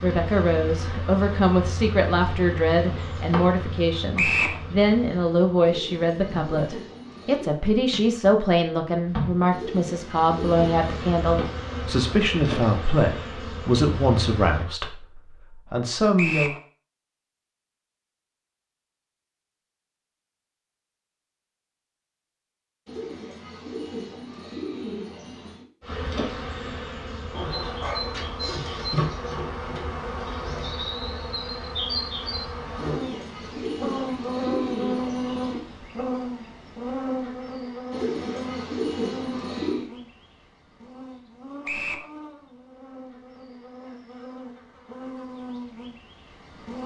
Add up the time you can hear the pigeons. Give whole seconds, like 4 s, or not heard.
11 s.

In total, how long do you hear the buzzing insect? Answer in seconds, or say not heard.
36 s.